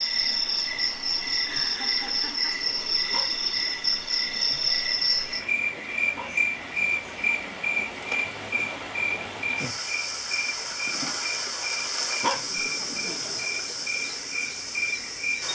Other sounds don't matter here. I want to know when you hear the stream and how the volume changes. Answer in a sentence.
You can hear the stream from 0.0 to 15.5 s, getting louder.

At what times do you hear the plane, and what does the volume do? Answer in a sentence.
You can't hear the plane here.